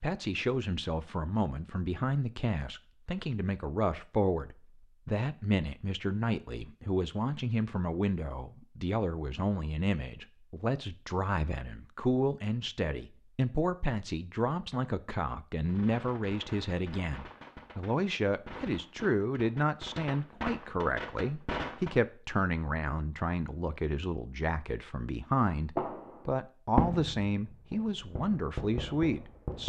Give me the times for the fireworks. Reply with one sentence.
You can hear the fireworks from 15.6 to 21.9 s and from 25.8 to 29.6 s.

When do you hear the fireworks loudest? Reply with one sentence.
The volume of the fireworks peaks at 27 seconds.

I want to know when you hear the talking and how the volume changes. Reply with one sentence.
You can hear the talking from 0.0 to 29.6 s, at a steady volume.